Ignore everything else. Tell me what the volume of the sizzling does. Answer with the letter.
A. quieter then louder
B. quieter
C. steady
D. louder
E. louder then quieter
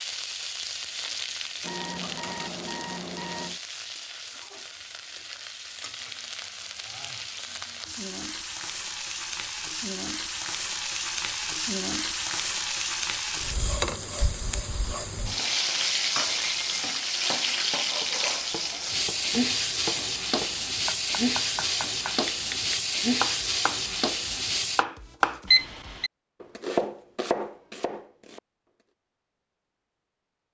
D.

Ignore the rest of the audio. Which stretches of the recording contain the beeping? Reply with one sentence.
You can hear the beeping from 1.6 to 3.6 s, from 16.4 to 16.9 s and from 25.5 to 26.1 s.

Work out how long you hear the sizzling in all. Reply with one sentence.
The sizzling can be heard for 25 seconds in total.